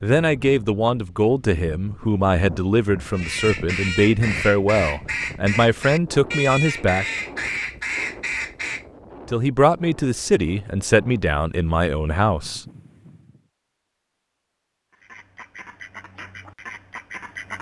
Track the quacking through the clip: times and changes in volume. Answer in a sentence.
You can hear the quacking from 3.1 to 8.8 s, at a steady volume; and briefly from 14.9 to 17.5 s.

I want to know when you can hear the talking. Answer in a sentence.
You can hear the talking from 0.0 to 7.0 s and from 9.3 to 12.6 s.